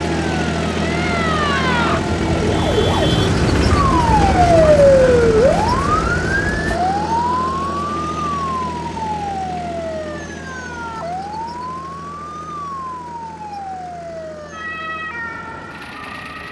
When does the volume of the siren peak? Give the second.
5 s.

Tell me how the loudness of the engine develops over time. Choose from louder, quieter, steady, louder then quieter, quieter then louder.
quieter.